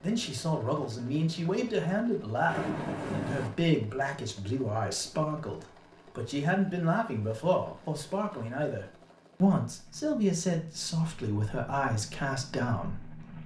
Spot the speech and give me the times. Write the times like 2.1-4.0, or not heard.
0.0-13.2.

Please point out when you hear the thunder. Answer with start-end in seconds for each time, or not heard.
2.5-3.5.